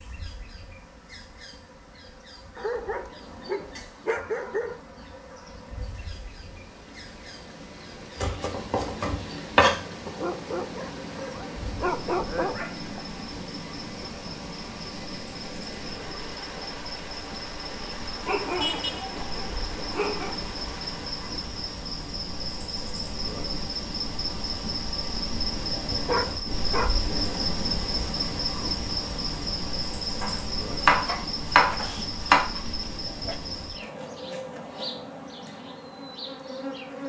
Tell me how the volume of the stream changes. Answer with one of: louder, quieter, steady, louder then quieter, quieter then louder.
louder.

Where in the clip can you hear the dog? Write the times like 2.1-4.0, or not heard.
2.5-4.8, 10.1-12.9, 18.2-20.4, 26.1-26.9, 31.1-33.4.